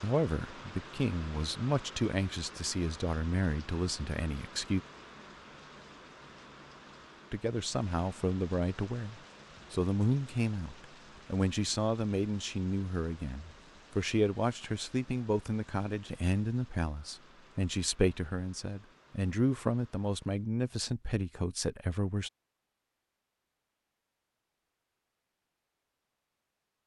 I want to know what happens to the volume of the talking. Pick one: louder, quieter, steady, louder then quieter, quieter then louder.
steady.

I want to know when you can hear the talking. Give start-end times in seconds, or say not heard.
0.0-4.8, 7.3-22.3.